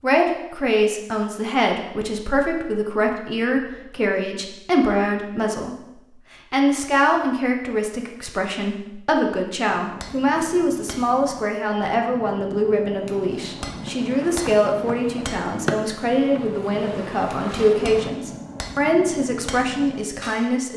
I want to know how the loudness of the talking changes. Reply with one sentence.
The loudness of the talking stays about the same.